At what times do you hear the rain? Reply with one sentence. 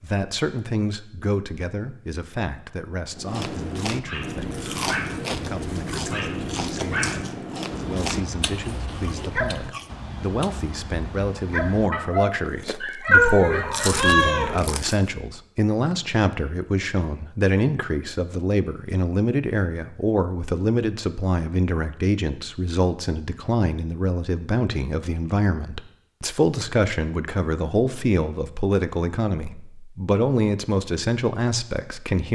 You can't hear the rain here.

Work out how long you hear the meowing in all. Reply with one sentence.
The meowing can be heard for 2 seconds in total.